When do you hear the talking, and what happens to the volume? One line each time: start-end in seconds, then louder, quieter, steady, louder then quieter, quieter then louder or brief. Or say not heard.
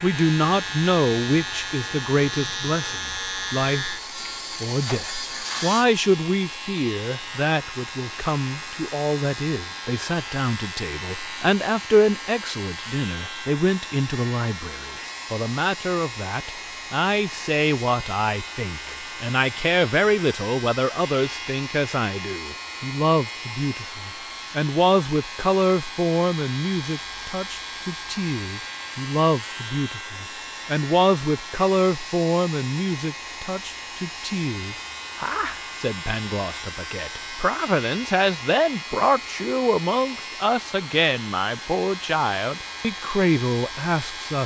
0.0-4.0 quieter
4.6-44.4 steady.